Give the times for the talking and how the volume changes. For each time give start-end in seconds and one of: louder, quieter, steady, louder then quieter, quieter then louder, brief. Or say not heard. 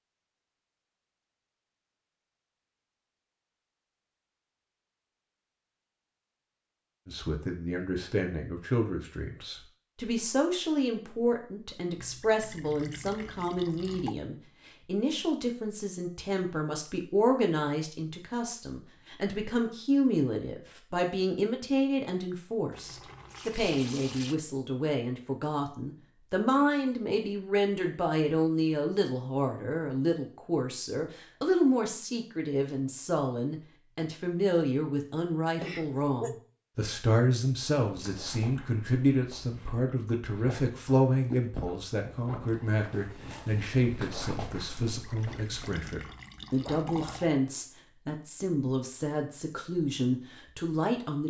7.0-51.2 steady.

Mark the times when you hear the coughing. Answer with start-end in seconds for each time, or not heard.
35.6-36.4.